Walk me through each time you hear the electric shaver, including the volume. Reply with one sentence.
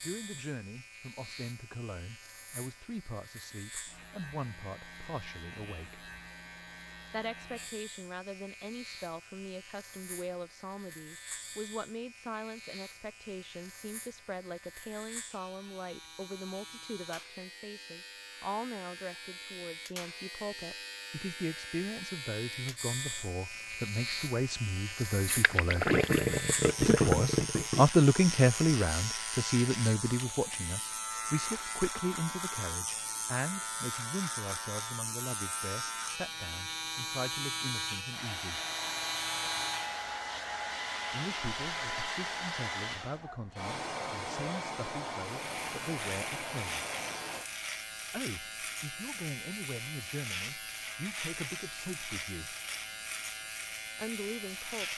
You can hear the electric shaver from 0.0 to 40.1 s, getting louder; and from 45.2 to 54.9 s, at a steady volume.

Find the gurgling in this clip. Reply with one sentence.
You can hear the gurgling from 25.2 to 27.9 s.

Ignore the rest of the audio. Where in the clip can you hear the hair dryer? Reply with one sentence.
The hair dryer can be heard from 38.1 to 47.5 s.